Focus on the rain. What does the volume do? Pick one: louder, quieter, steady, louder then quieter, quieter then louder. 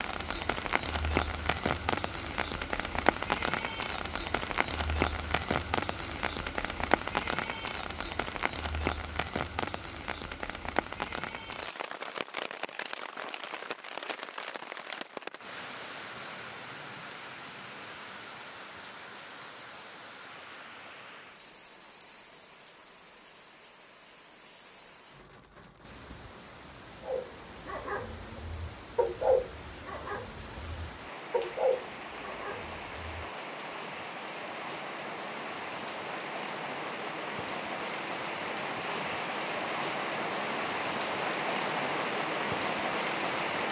quieter then louder.